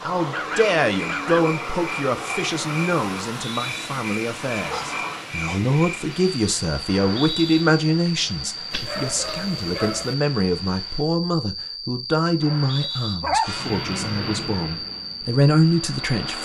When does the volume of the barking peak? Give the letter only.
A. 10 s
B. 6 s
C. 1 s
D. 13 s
D.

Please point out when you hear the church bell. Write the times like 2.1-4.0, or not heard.
not heard.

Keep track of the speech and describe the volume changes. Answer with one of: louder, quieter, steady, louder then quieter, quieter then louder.
steady.